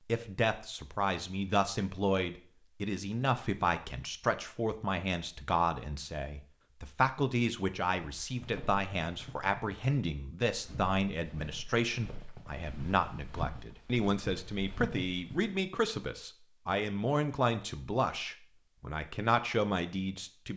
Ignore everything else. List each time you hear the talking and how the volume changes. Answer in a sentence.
You can hear the talking from 0.1 to 20.5 s, at a steady volume.